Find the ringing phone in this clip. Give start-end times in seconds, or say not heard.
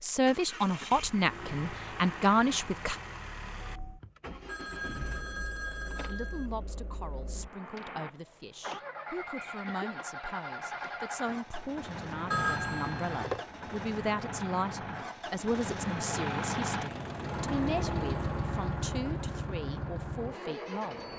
4.5-6.5, 12.3-13.4.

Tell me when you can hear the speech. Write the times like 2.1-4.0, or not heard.
0.0-3.0, 6.1-21.1.